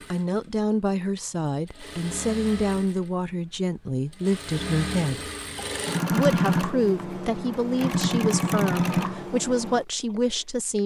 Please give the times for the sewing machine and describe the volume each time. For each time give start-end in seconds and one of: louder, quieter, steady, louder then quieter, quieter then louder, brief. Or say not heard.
0.0-10.2 louder.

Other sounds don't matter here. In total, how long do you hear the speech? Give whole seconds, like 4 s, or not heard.
10 s.